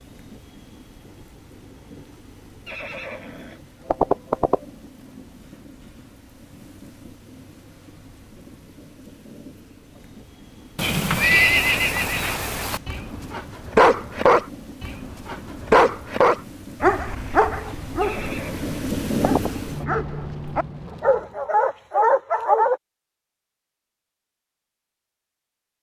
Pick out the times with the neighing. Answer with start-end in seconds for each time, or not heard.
2.6-4.6, 10.8-12.8, 18.0-19.5.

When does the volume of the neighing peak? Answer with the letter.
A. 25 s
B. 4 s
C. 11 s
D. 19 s
C.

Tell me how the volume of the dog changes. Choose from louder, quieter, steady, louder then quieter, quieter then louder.
quieter then louder.